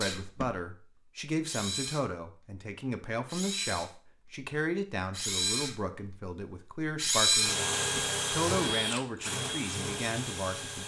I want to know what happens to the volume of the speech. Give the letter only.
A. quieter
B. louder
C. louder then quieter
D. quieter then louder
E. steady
E.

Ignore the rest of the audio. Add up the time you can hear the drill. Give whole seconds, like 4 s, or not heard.
11 s.